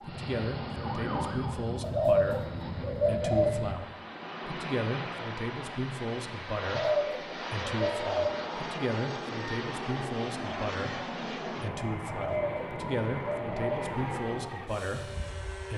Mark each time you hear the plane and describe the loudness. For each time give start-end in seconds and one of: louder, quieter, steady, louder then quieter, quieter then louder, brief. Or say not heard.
0.0-15.7 steady.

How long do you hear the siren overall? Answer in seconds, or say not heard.
3 s.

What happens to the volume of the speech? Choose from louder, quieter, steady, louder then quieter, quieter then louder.
steady.